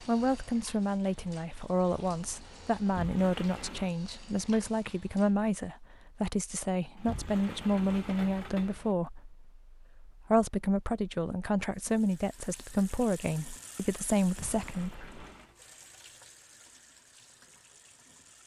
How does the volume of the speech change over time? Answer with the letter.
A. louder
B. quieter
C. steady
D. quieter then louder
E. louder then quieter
C.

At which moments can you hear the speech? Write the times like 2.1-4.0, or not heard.
0.0-15.1.